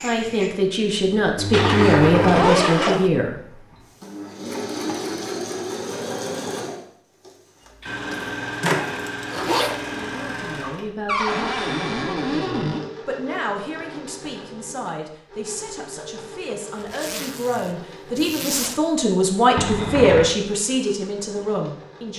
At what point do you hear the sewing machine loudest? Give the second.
2 s.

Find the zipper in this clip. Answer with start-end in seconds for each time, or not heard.
1.5-3.1, 7.8-9.8, 16.9-18.8.